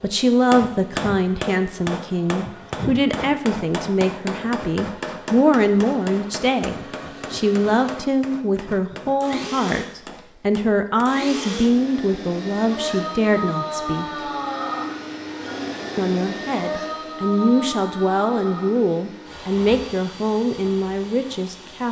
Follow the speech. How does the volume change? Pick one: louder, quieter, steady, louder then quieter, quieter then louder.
steady.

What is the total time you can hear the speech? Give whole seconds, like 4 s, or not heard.
20 s.